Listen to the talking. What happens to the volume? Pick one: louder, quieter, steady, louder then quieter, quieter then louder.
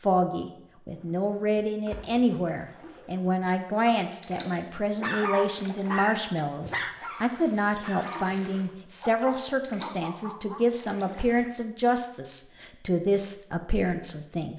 steady.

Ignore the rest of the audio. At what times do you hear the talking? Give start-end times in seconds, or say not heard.
0.0-14.5.